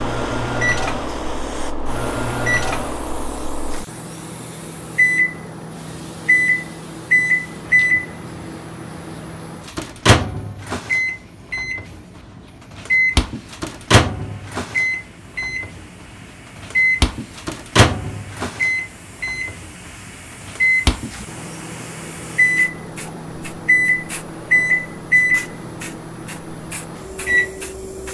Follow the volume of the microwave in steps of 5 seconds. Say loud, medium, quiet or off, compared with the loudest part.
medium, loud, loud, loud, loud, loud.